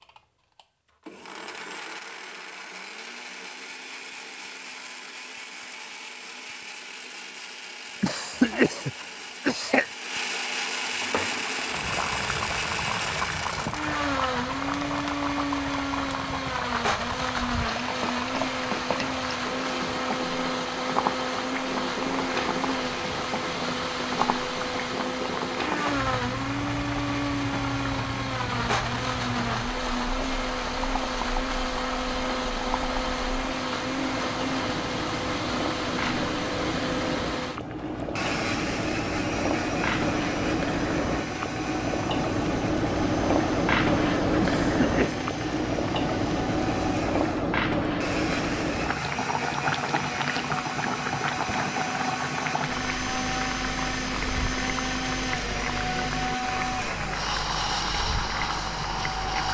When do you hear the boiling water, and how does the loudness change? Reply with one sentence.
You can hear the boiling water from 10.8 to 59.5 s, getting louder then quieter.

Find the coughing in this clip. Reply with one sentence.
The coughing can be heard from 8.0 to 9.9 s and from 44.4 to 45.2 s.